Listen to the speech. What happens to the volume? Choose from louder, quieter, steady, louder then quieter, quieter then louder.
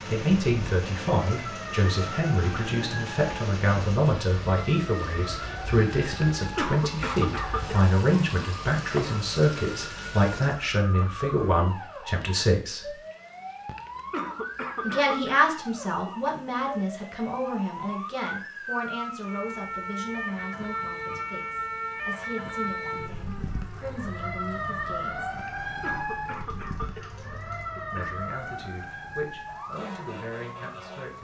quieter.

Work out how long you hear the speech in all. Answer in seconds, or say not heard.
27 s.